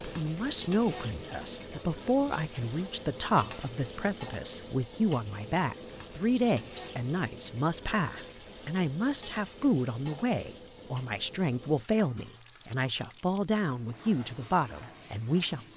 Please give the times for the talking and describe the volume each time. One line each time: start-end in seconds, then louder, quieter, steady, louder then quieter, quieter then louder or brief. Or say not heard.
0.0-15.7 steady.